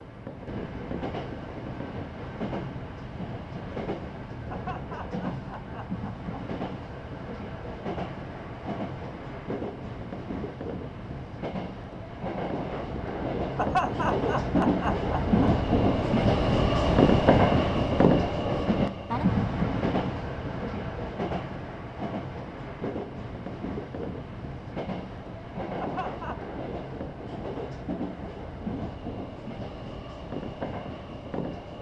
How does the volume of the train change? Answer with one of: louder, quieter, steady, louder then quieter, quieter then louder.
louder then quieter.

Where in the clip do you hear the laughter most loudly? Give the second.
14 s.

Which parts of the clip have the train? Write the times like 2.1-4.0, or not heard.
0.0-31.7.